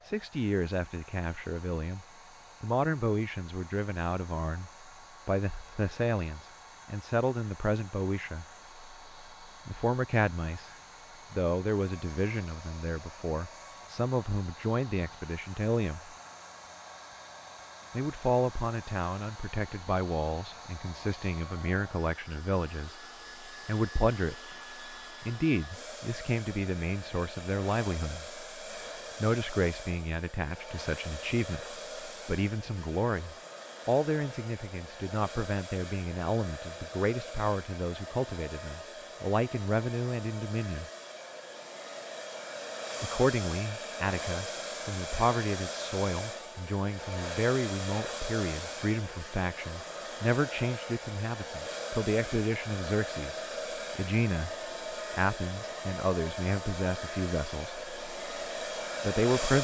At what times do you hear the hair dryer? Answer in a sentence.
You can hear the hair dryer from 0.0 to 59.5 s.